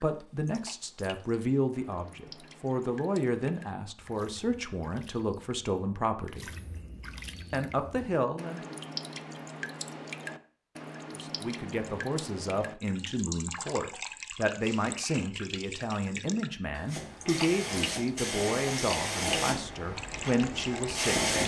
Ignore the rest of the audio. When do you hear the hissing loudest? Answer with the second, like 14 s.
21 s.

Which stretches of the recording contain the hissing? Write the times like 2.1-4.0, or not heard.
16.9-21.4.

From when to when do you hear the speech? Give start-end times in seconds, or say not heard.
0.0-6.5, 7.5-8.8, 11.2-21.4.